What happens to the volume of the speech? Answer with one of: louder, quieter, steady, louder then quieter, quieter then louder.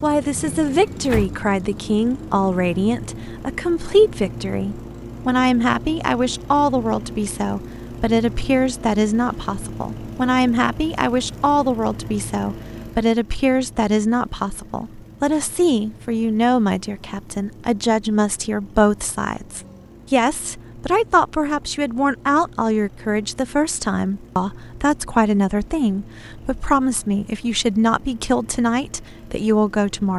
steady.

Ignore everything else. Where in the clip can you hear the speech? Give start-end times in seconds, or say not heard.
0.0-30.1.